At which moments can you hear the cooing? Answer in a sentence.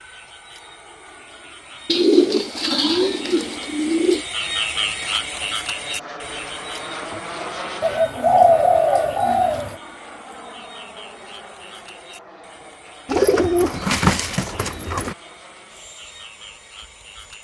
The cooing can be heard from 1.9 to 4.2 s, from 7.8 to 9.8 s and from 13.1 to 15.2 s.